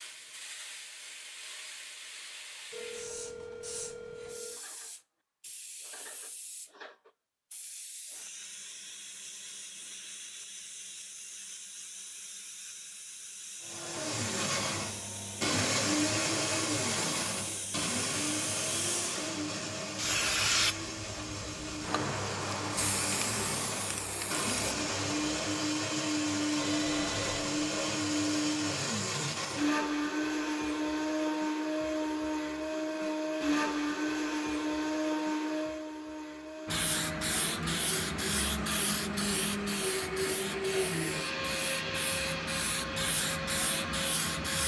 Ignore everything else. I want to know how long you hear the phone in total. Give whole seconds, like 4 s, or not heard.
3 s.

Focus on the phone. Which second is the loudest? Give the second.
27 s.